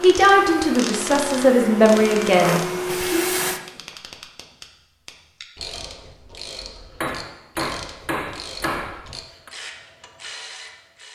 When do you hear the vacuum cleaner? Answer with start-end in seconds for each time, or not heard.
0.0-3.6.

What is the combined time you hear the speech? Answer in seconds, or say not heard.
3 s.